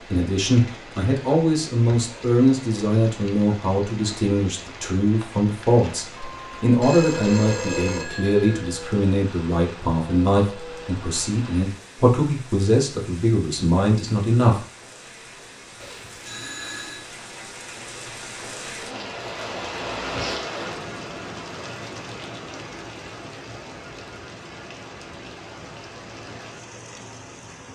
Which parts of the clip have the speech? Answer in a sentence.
You can hear the speech from 0.0 to 14.6 s.